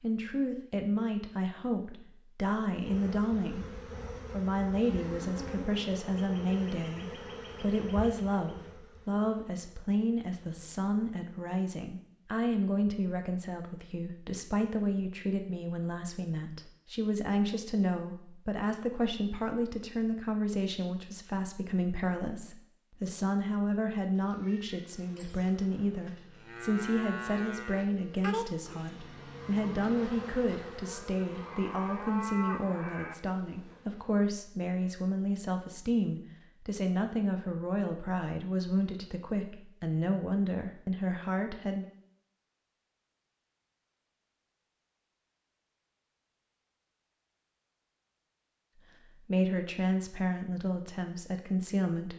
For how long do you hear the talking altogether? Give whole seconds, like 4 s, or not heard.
44 s.